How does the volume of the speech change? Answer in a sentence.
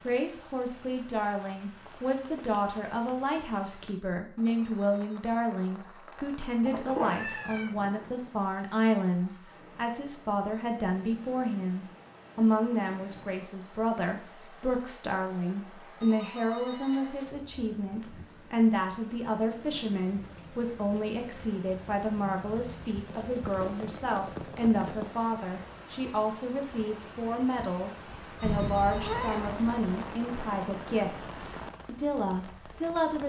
The volume of the speech stays about the same.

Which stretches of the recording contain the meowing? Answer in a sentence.
The meowing can be heard from 6.7 to 7.7 s and from 28.4 to 29.8 s.